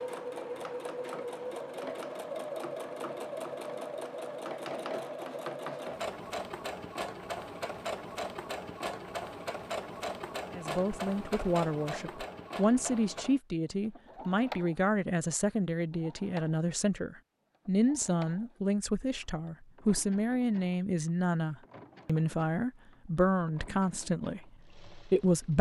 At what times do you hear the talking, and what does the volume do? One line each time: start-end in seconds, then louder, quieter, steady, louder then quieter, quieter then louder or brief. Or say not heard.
10.5-25.5 steady.